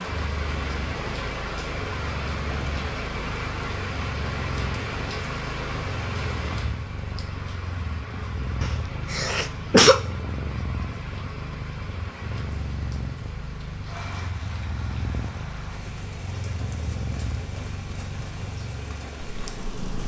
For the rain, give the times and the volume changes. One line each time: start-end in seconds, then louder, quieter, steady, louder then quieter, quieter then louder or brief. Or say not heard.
0.0-20.0 quieter.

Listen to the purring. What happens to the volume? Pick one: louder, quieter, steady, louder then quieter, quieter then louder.
steady.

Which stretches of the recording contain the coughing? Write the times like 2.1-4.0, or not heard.
8.6-10.0.